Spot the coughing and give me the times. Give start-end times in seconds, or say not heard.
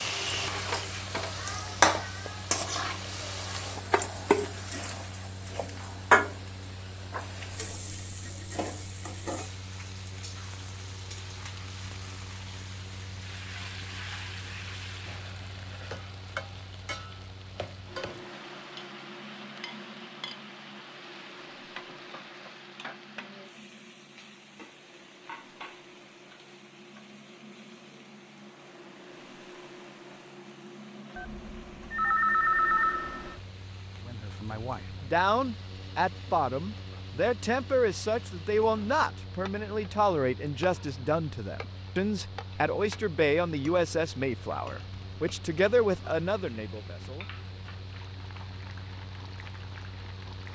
not heard.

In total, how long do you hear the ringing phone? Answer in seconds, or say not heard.
2 s.